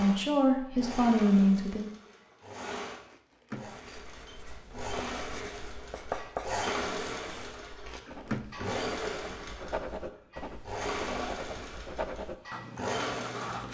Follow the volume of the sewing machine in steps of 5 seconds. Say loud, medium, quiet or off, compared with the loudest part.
medium, loud, loud.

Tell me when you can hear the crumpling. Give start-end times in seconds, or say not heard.
3.1-4.0, 7.8-8.4.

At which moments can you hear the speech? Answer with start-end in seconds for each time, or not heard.
0.0-1.9.